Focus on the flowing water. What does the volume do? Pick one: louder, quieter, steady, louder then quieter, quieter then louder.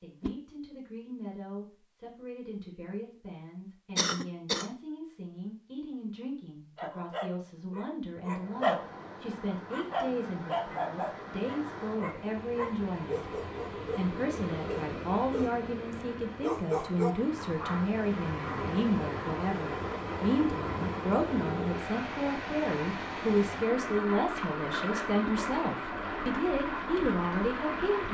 louder.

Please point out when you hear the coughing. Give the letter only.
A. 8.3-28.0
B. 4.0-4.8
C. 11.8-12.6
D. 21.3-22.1
B.